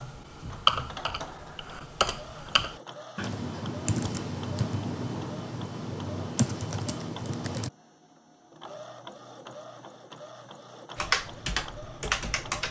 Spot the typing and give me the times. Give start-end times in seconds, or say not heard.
0.0-7.7, 10.9-12.6.